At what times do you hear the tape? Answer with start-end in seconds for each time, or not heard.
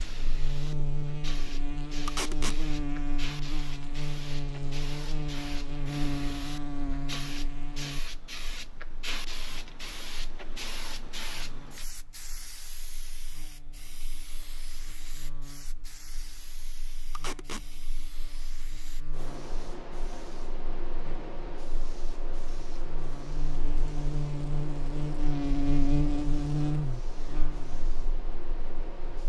2.0-2.6, 17.1-17.6.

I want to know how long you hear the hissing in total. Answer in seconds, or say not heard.
29 s.